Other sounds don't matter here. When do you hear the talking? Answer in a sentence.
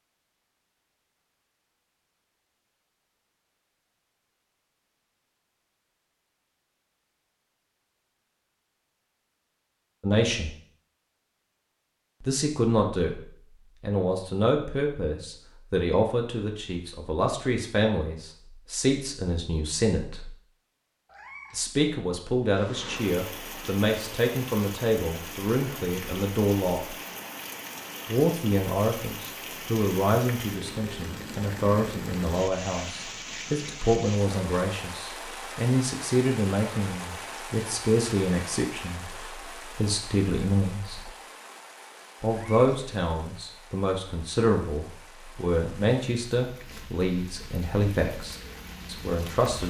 The talking can be heard from 10.0 to 10.5 s, from 12.2 to 13.2 s, from 13.8 to 20.3 s, from 21.5 to 26.9 s, from 28.1 to 41.1 s and from 42.2 to 49.6 s.